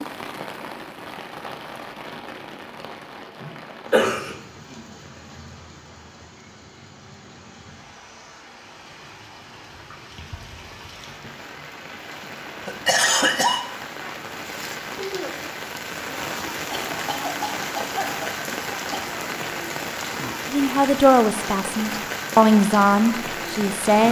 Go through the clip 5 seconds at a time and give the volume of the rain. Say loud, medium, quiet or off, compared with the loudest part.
medium, quiet, medium, loud, loud.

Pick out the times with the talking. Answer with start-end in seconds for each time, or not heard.
20.5-24.0.